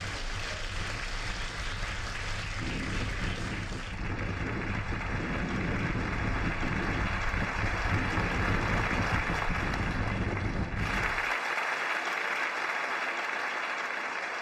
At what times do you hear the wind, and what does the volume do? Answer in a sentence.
You can hear the wind from 0.0 to 11.3 s, getting louder.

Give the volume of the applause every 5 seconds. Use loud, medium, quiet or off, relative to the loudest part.
medium, loud, loud.